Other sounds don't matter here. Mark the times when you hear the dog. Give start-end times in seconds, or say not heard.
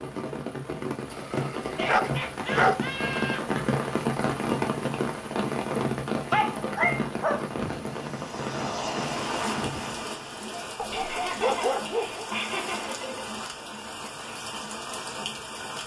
1.0-2.8, 6.3-7.5, 10.8-12.2.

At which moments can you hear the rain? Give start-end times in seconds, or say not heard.
0.0-15.8.